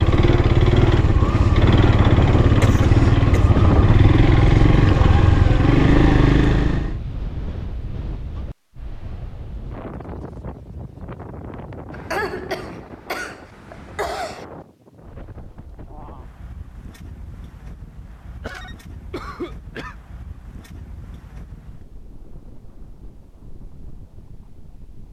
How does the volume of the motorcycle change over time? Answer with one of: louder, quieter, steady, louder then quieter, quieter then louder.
steady.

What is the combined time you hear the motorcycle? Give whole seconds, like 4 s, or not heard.
7 s.